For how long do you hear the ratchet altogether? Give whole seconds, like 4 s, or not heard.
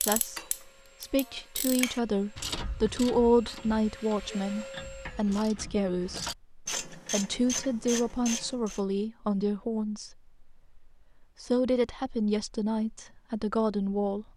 9 s.